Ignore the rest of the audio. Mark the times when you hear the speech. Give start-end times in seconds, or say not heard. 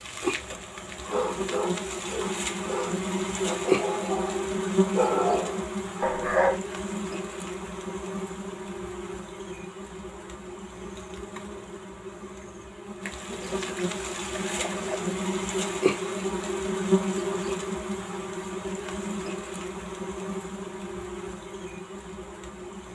not heard.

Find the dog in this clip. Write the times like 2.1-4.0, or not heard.
1.1-6.6.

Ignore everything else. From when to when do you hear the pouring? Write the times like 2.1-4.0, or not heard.
13.4-14.9.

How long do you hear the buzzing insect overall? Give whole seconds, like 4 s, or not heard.
23 s.